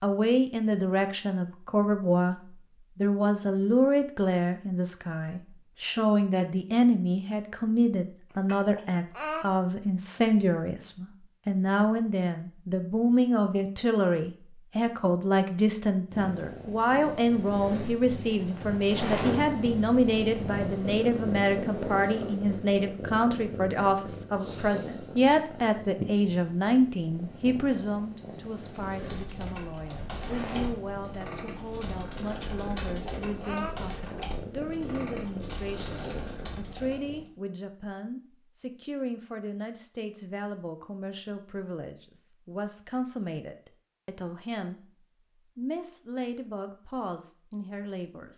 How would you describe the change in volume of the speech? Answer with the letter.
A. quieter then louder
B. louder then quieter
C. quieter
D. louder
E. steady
C.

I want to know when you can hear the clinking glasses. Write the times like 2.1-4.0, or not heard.
8.3-9.4, 32.6-33.8.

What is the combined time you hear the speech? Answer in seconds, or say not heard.
48 s.